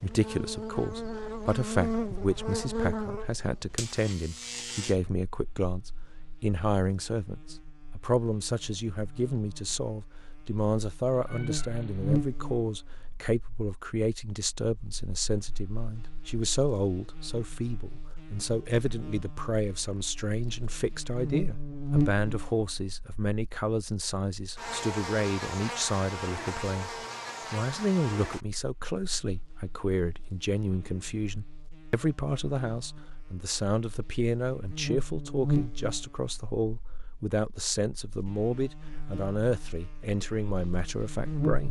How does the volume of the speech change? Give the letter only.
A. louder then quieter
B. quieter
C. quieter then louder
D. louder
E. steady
E.